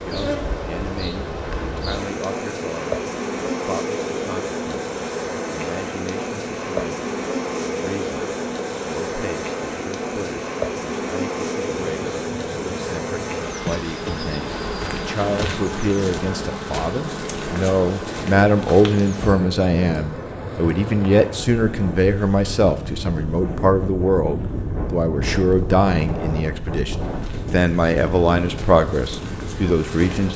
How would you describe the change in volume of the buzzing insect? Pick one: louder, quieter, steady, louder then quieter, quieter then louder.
quieter.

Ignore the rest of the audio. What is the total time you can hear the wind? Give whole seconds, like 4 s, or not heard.
30 s.